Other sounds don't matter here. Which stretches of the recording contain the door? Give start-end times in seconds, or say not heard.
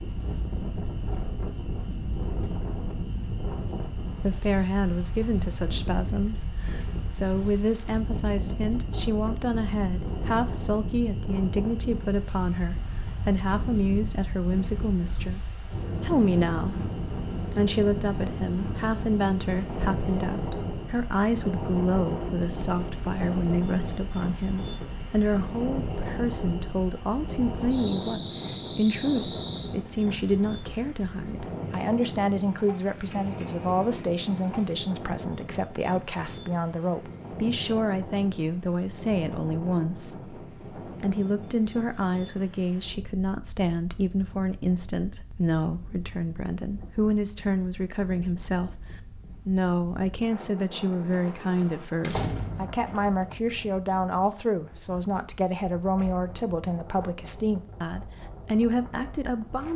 52.0-52.8.